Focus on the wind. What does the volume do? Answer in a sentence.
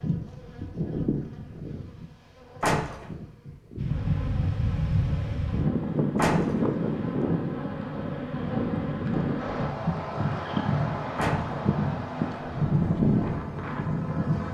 The volume of the wind goes down.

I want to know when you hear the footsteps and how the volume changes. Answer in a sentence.
You can't hear the footsteps here.